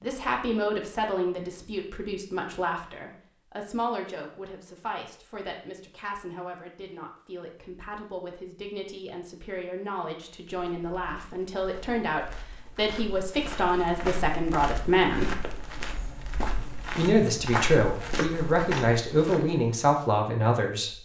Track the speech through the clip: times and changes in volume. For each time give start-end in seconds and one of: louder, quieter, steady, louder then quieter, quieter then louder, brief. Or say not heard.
0.0-15.4 quieter then louder
16.9-20.9 steady.